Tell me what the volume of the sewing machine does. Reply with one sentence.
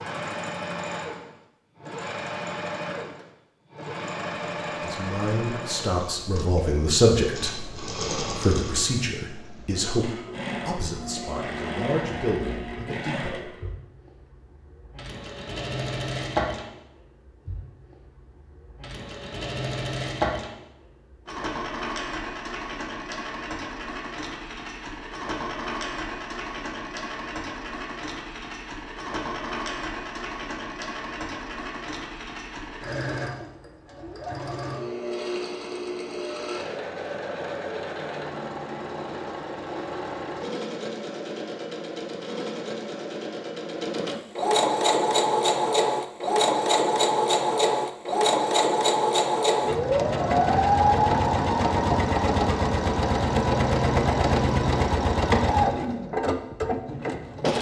The volume of the sewing machine goes up.